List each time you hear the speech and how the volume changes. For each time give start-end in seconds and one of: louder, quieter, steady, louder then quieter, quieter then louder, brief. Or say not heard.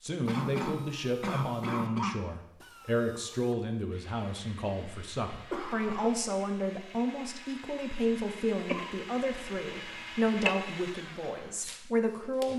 0.0-12.5 steady.